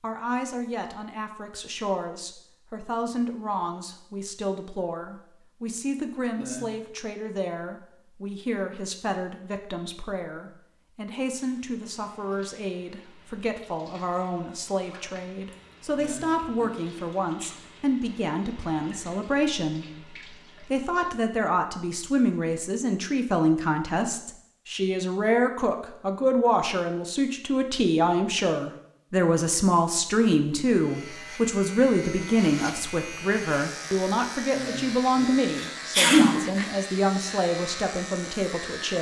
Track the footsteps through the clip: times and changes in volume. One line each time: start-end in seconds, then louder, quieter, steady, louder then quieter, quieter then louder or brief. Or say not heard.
not heard.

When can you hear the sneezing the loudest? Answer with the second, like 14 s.
36 s.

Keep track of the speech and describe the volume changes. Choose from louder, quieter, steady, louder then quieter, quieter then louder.
louder.